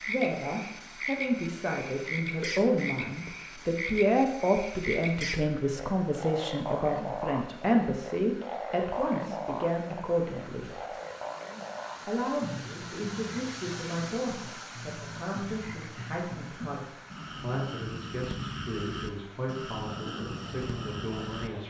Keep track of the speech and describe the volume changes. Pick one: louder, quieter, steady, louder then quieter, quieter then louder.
quieter.